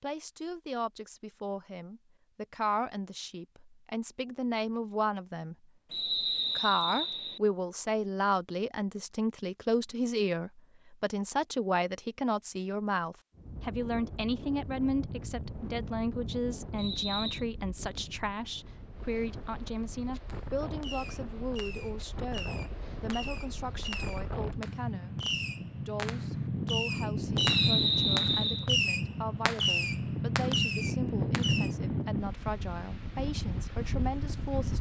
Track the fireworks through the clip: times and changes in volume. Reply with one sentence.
The fireworks can be heard from 20.2 to 31.7 s, getting louder.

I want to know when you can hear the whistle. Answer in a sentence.
You can hear the whistle from 5.9 to 7.4 s, from 16.8 to 17.4 s and from 27.4 to 28.7 s.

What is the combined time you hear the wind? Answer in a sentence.
The wind can be heard for 21 seconds in total.